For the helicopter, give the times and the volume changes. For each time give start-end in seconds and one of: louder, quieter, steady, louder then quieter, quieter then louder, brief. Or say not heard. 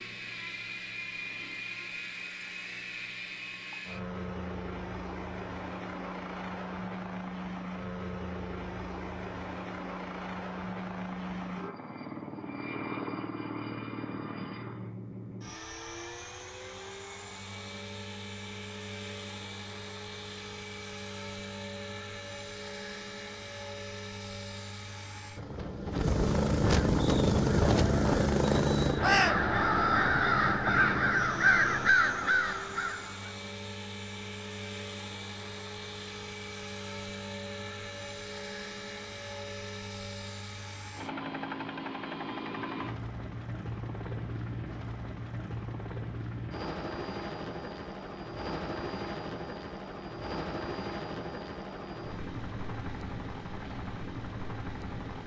0.0-55.2 louder then quieter.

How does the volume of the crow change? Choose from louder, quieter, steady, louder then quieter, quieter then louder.
louder.